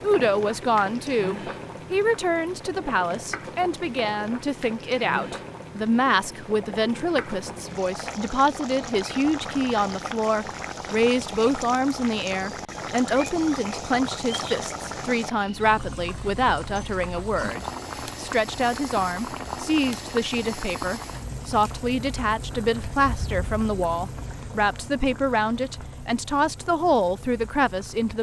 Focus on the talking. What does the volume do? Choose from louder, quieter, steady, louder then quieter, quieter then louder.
steady.